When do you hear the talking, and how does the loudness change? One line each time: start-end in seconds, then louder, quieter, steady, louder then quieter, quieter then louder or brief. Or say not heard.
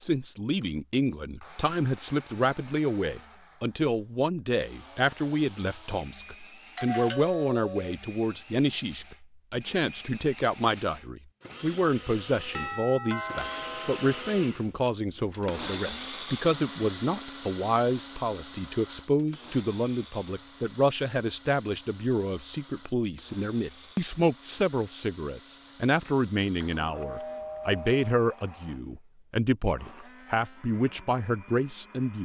0.0-32.2 steady.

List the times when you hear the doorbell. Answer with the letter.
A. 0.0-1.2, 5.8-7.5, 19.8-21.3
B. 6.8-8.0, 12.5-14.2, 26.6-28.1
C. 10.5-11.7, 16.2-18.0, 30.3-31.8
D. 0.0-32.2
B.